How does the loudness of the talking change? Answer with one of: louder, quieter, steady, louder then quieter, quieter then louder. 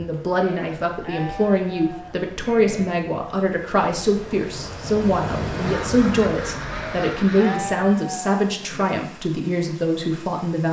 steady.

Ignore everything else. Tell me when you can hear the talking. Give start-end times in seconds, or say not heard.
0.0-10.6.